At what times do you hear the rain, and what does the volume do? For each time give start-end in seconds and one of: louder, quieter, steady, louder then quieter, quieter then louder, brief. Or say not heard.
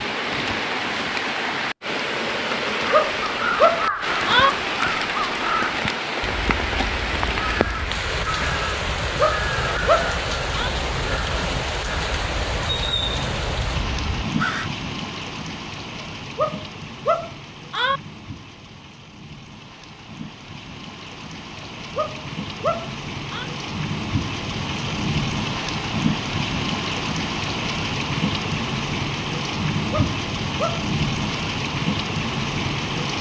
0.0-33.1 quieter then louder.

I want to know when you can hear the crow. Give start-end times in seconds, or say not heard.
3.0-14.7.